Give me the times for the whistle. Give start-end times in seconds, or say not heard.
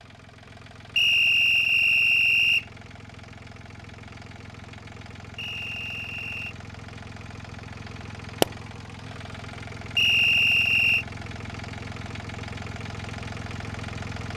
0.9-2.6, 5.3-6.5, 9.9-11.1.